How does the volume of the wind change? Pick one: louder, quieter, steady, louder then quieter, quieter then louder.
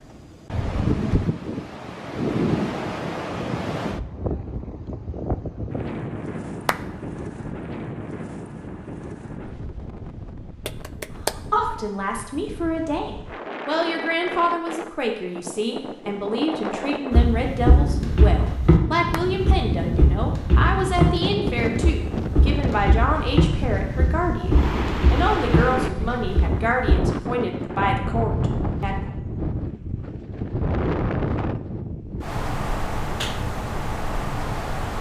quieter then louder.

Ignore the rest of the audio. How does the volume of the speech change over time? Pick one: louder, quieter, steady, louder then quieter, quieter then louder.
steady.